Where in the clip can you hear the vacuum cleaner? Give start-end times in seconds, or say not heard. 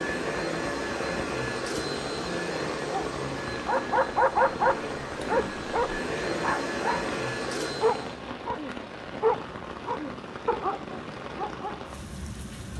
0.0-8.2.